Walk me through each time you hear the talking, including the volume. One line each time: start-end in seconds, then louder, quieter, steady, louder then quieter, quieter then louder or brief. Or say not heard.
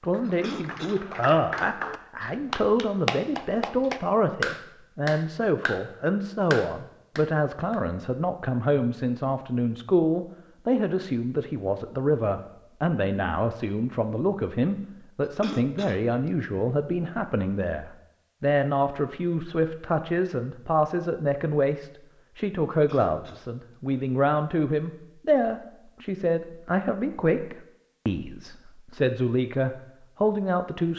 0.0-30.9 steady.